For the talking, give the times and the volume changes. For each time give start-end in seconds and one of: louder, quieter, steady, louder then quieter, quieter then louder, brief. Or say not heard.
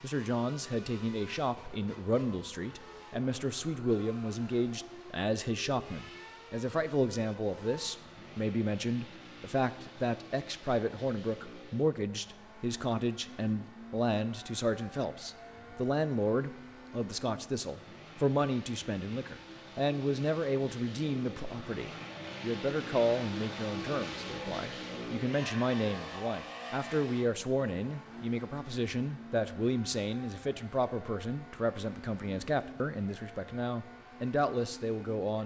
0.0-35.4 steady.